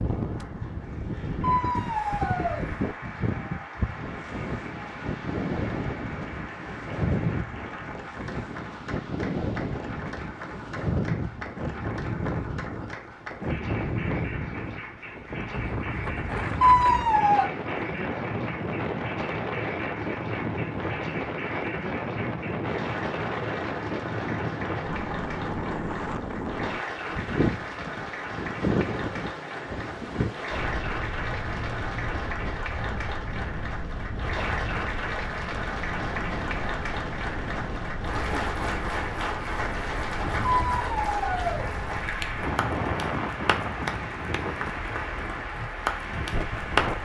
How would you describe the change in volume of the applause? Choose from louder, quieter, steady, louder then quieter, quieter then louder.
louder.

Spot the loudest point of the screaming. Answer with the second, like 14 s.
17 s.